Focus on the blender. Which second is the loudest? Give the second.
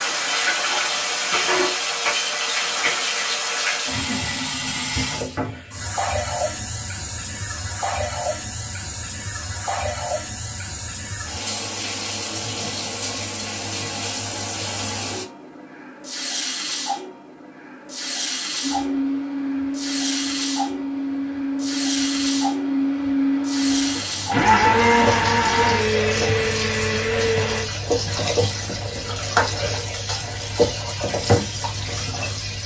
25 s.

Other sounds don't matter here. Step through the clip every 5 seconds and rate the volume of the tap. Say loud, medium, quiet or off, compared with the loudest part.
loud, medium, medium, medium, medium, loud, loud.